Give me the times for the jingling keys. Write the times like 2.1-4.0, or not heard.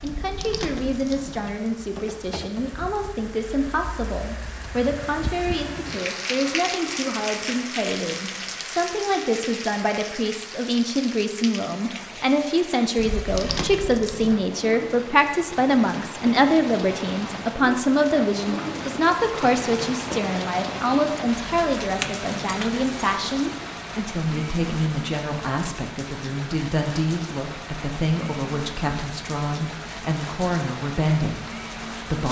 0.0-1.4, 12.9-14.4, 21.9-23.2.